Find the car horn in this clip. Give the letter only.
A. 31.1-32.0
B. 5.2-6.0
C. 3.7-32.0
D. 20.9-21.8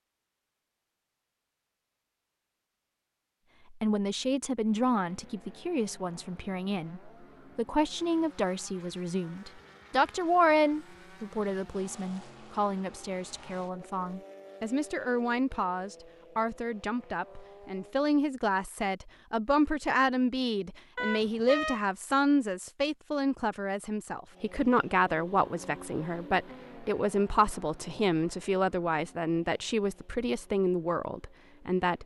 D.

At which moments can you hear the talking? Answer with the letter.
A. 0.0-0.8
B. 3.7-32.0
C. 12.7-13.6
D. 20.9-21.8
B.